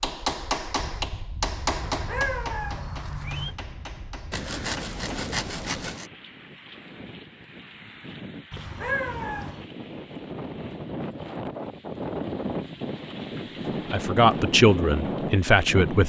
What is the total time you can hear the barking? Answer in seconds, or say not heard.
not heard.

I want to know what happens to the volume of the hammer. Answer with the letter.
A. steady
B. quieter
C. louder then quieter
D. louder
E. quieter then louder
B.